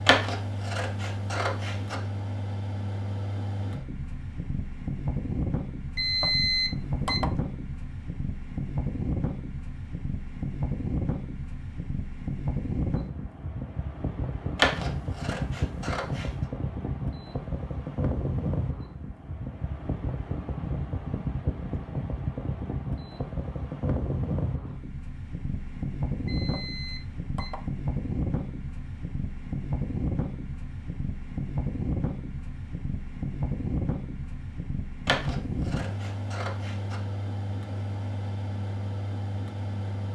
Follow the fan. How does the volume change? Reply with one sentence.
The loudness of the fan stays about the same.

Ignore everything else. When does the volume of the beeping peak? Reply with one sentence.
The volume of the beeping peaks at 6 seconds.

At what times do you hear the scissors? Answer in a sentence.
The scissors can be heard from 0.1 to 1.9 s, from 14.6 to 16.3 s and from 35.0 to 37.0 s.